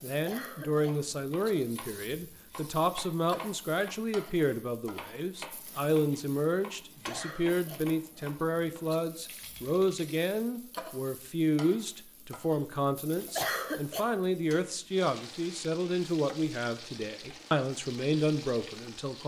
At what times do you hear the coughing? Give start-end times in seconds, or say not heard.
0.2-1.1, 7.1-7.9, 13.3-14.2.